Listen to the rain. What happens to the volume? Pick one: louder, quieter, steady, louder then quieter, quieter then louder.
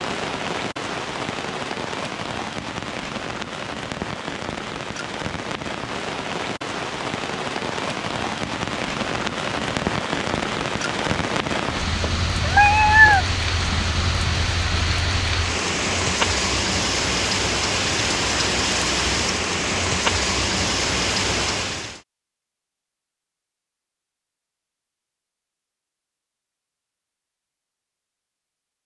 louder.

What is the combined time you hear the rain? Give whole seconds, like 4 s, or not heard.
22 s.